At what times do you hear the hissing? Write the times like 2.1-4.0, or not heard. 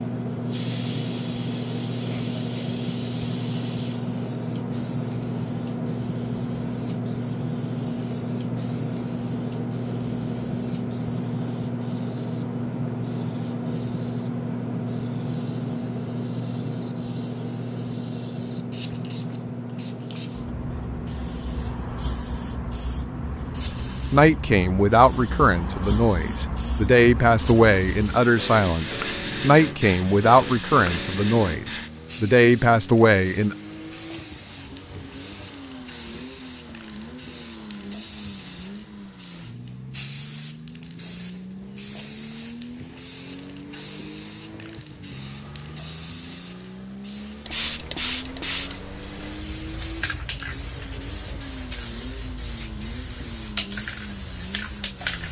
0.1-55.2.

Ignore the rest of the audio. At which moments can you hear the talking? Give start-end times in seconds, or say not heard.
23.6-33.5.